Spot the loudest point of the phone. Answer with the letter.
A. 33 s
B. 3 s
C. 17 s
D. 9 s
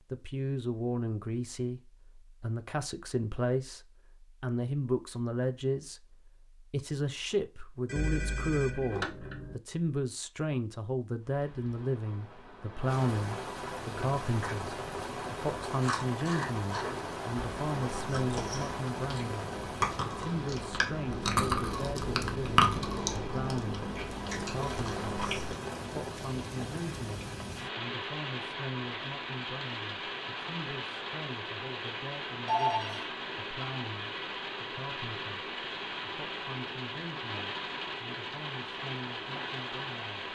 A.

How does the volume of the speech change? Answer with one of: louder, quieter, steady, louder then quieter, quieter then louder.
quieter.